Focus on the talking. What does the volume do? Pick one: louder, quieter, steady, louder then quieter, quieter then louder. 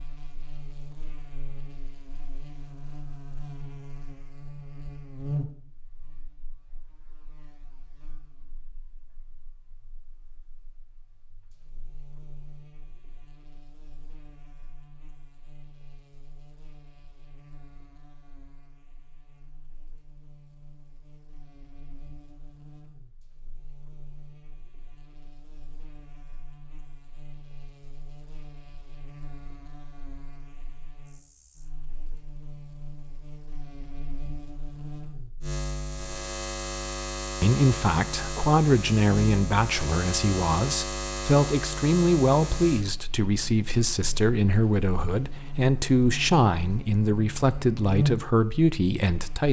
steady.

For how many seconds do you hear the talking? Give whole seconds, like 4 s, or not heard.
12 s.